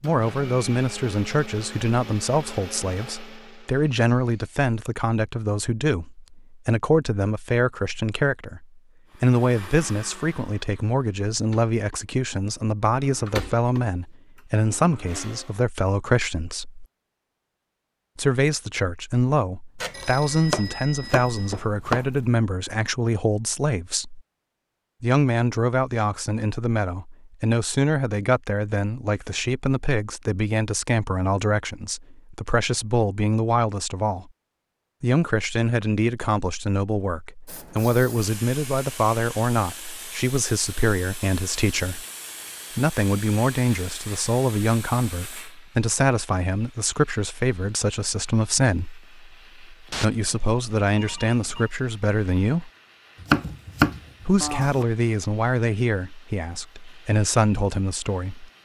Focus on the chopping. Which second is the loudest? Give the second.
54 s.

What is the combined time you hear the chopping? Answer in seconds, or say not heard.
4 s.